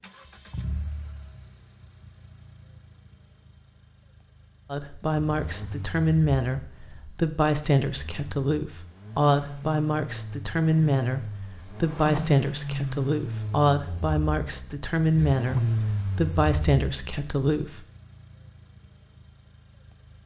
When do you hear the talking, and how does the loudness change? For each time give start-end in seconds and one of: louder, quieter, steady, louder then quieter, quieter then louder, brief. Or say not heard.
4.7-17.9 steady.